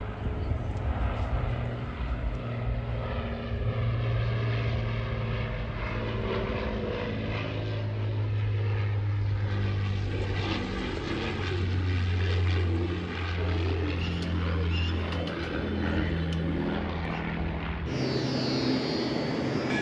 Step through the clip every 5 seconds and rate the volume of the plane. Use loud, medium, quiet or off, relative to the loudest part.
loud, loud, medium, loud.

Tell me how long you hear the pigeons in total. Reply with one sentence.
The pigeons can be heard for 7 seconds in total.